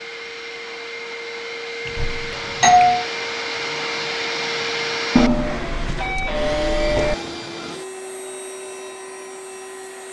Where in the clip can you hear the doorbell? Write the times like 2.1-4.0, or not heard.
1.9-3.0, 5.2-7.2.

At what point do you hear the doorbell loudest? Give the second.
3 s.